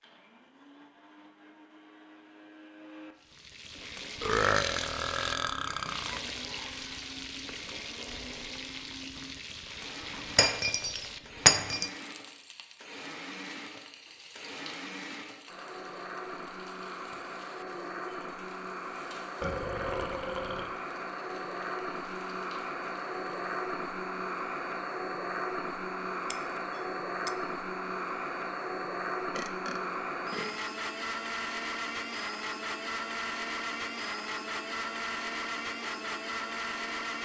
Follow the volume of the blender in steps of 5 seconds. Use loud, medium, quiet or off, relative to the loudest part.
quiet, quiet, medium, medium, loud, loud, loud, loud.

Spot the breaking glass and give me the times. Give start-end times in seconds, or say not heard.
10.3-11.9, 26.3-27.4.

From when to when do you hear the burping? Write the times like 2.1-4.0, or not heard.
4.2-6.2, 19.4-20.7, 29.4-30.6.